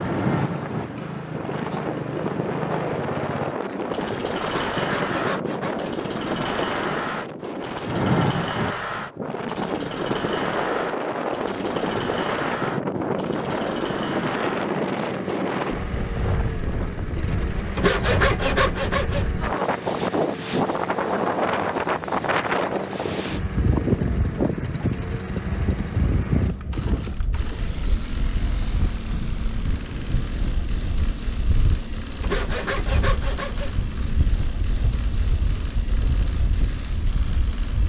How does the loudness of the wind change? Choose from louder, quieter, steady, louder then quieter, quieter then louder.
quieter.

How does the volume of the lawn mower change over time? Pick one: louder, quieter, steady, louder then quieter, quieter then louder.
quieter.